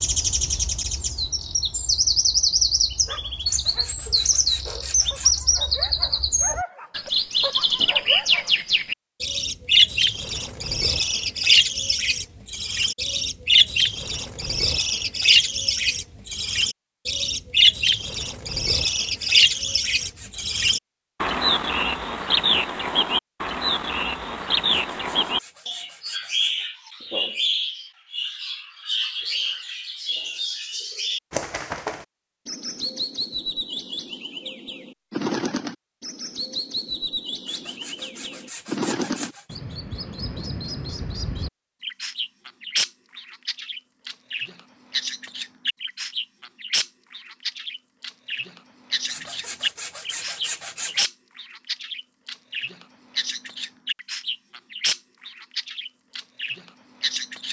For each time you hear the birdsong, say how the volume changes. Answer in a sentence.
The birdsong can be heard from 0.0 to 57.4 s, getting quieter.